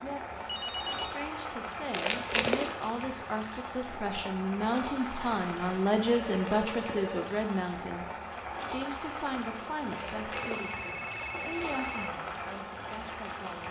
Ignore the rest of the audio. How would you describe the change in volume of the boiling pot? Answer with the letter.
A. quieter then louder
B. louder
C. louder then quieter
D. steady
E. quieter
D.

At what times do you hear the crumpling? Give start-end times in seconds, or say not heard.
1.9-2.9, 5.2-6.0, 9.9-11.8.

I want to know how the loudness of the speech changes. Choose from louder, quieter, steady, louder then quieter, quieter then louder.
louder then quieter.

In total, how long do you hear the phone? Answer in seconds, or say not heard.
4 s.